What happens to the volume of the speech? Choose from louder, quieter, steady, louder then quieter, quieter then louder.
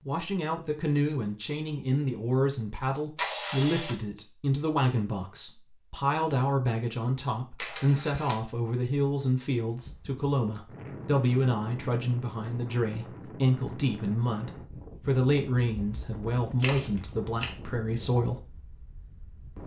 steady.